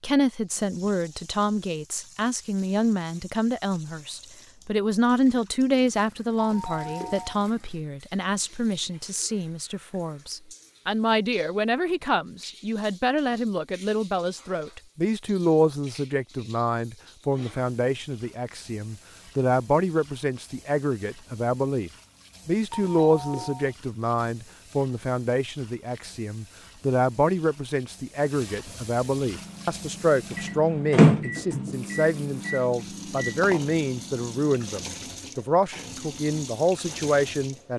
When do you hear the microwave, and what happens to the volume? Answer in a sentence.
You can hear the microwave from 29.2 to 35.0 s, getting louder then quieter.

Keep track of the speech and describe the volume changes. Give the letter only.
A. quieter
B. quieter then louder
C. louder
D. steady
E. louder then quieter
D.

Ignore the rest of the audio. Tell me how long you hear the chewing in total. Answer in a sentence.
The chewing can't be heard in this clip.